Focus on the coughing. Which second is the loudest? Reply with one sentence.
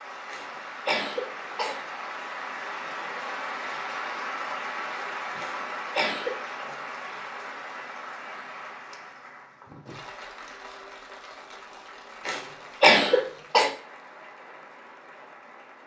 The volume of the coughing peaks at 13 seconds.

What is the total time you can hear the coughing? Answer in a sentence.
The coughing can be heard for 4 seconds in total.